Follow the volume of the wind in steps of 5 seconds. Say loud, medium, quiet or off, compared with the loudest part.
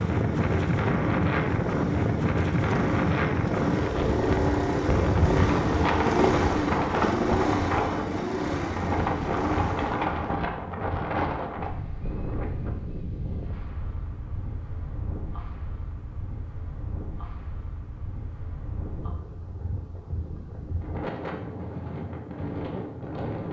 loud, loud, medium, quiet, medium.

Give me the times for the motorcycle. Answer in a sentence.
You can hear the motorcycle from 0.0 to 10.4 s.